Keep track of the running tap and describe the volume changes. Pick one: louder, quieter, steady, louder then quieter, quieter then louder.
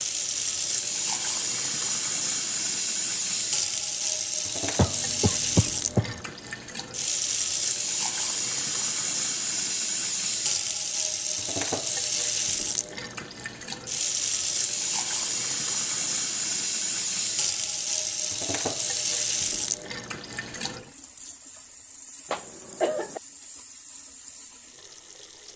quieter.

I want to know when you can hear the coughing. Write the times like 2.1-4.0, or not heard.
4.8-6.2, 22.3-23.2.